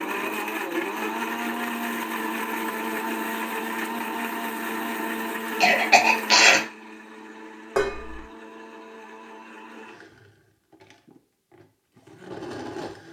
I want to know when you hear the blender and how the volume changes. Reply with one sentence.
The blender can be heard from 0.0 to 13.0 s, getting quieter.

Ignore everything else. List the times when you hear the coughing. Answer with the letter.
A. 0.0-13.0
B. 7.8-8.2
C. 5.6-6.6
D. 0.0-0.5
C.